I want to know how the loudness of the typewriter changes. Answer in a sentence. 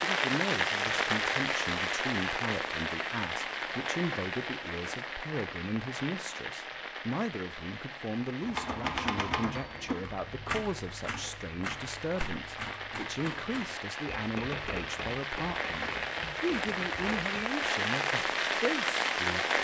The loudness of the typewriter goes down.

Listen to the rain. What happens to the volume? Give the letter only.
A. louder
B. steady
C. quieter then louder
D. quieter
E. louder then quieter
C.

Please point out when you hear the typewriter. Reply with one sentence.
The typewriter can be heard from 8.4 to 17.7 s.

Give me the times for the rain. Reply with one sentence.
You can hear the rain from 0.0 to 19.5 s.